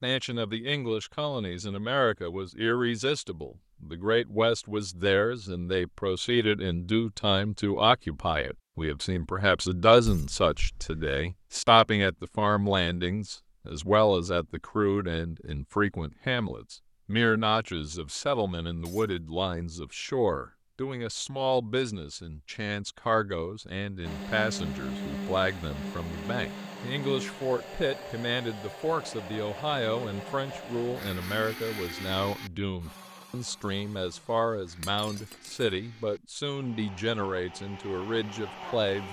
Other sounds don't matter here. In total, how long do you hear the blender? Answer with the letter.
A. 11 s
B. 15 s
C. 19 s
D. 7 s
B.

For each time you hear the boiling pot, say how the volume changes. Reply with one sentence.
You can't hear the boiling pot here.